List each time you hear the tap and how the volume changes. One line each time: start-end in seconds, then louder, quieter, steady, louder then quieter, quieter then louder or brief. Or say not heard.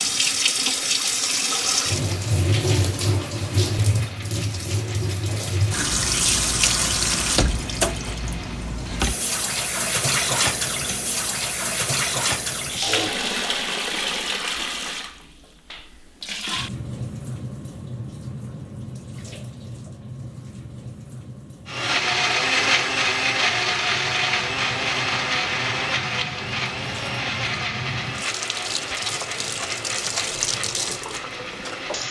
0.0-32.0 quieter then louder.